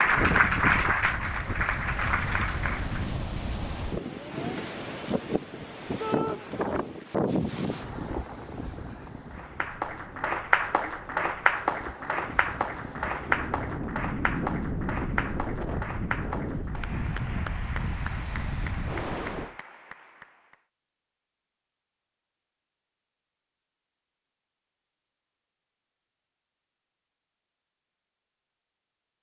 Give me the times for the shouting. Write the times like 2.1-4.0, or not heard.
6.0-6.4.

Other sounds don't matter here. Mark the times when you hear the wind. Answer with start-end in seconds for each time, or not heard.
0.0-19.6.